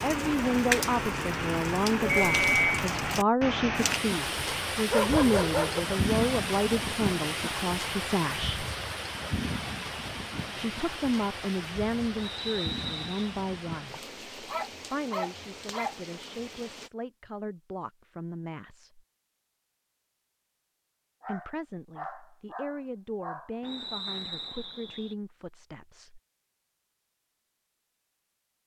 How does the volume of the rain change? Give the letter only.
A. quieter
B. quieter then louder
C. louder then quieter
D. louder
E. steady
A.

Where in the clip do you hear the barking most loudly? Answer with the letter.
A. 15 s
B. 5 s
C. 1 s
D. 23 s
B.